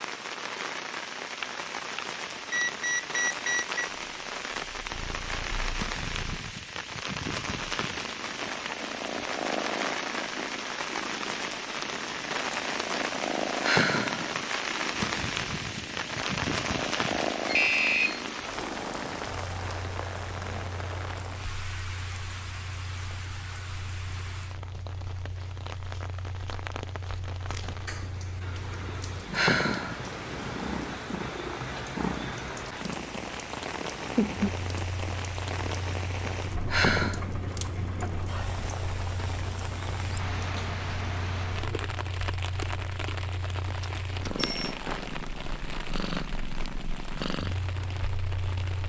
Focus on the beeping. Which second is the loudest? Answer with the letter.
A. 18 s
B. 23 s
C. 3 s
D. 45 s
A.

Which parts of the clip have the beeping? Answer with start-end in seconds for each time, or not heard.
1.4-3.9, 17.4-18.2, 43.8-44.8.